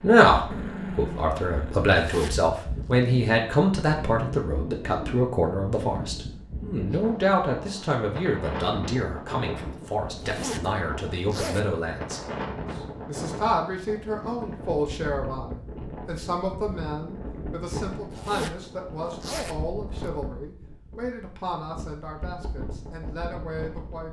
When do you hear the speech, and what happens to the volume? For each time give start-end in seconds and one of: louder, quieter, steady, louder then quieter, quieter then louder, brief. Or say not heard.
0.0-24.0 quieter.